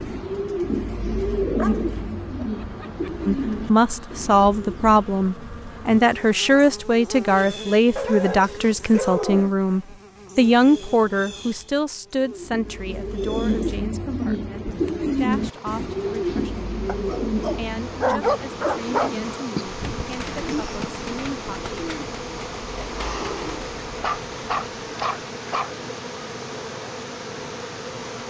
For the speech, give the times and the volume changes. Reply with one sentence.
You can hear the speech from 3.2 to 21.8 s, getting quieter.